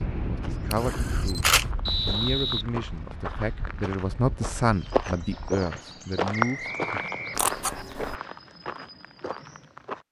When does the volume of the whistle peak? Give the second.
2 s.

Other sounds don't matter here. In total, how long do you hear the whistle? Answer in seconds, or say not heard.
3 s.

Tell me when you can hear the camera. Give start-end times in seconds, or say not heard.
0.7-1.6, 7.3-8.2.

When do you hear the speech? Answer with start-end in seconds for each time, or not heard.
0.2-7.0.